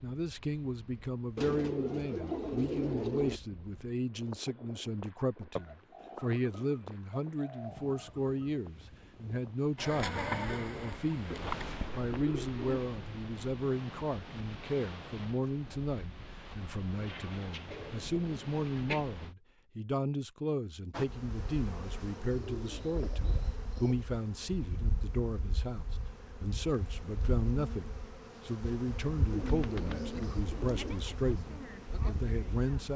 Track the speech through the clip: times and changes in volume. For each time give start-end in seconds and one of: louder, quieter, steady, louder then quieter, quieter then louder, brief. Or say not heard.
0.0-32.9 steady.